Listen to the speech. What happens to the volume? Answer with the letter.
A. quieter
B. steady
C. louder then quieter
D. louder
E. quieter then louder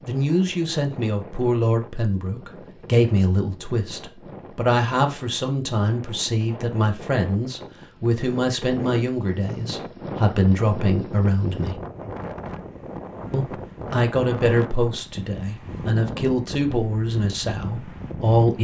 B.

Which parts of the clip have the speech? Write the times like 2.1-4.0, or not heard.
0.1-11.8, 13.3-18.5.